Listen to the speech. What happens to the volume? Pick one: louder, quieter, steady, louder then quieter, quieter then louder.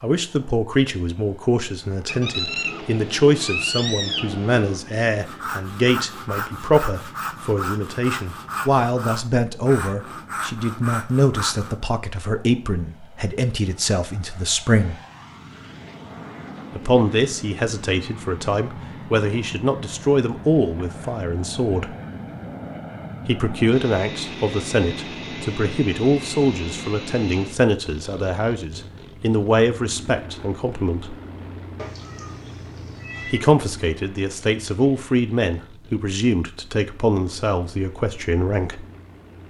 steady.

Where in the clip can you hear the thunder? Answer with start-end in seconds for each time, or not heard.
not heard.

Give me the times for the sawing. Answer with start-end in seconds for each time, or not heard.
5.1-11.9.